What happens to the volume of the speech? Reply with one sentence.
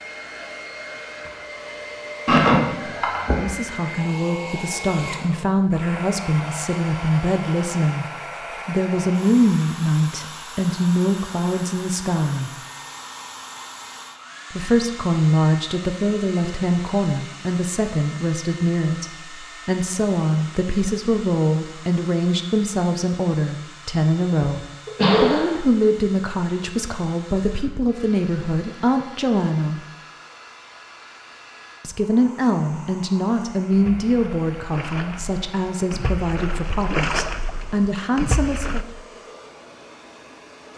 The volume of the speech stays about the same.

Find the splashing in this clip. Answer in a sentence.
The splashing can be heard from 33.7 to 38.9 s.